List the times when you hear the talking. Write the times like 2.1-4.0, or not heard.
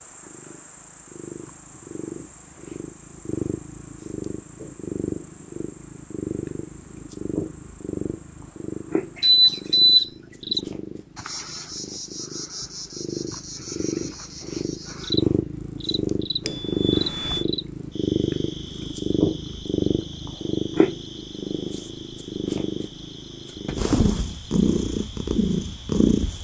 not heard.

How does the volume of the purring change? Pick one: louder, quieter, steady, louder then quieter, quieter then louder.
louder.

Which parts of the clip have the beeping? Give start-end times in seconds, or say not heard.
9.2-10.1, 16.4-17.4.